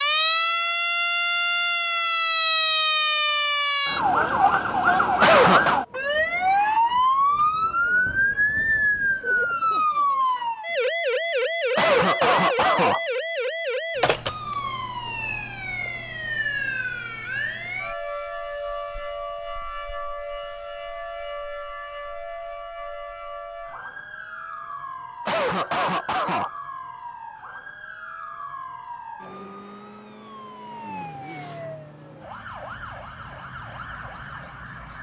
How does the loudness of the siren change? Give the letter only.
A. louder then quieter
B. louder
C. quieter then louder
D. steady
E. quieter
E.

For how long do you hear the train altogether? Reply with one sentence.
You can't hear the train here.